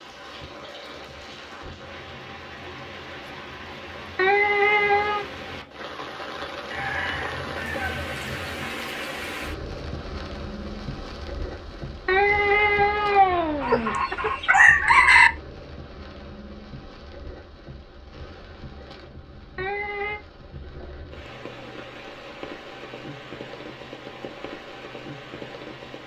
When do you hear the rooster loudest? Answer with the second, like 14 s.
15 s.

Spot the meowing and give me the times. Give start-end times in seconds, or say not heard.
4.2-5.2, 12.1-14.0, 19.6-20.2.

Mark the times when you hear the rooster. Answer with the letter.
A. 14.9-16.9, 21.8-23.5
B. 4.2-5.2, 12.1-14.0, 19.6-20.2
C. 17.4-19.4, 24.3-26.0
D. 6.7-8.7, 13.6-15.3
D.